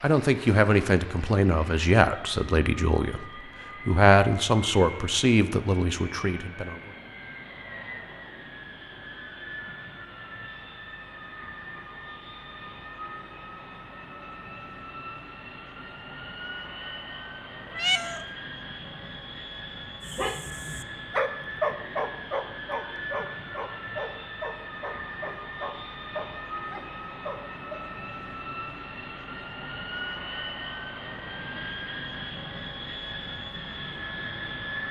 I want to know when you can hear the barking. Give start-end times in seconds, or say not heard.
20.0-27.8.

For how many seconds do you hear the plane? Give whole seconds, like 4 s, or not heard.
35 s.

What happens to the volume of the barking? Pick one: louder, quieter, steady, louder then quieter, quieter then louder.
quieter.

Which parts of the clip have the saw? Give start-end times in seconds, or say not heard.
not heard.